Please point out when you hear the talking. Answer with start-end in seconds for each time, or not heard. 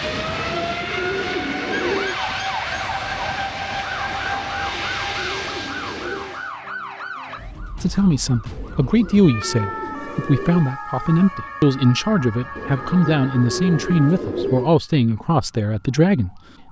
7.8-16.6.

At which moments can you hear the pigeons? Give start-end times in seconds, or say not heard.
0.0-2.1, 4.2-6.4, 8.5-10.7, 12.6-14.7.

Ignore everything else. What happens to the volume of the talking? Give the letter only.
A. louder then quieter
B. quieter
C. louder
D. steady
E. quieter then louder
D.